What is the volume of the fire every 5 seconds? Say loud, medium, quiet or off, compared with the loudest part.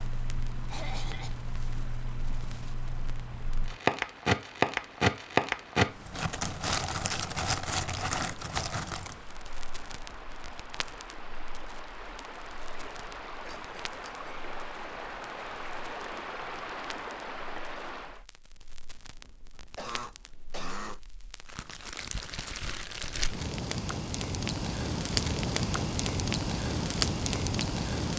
loud, loud, quiet, quiet, medium, loud.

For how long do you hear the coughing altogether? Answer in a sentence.
You can hear the coughing for 3 seconds altogether.